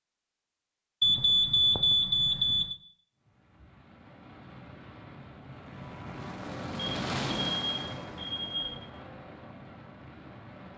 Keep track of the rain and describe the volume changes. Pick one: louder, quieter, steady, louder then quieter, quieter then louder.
louder then quieter.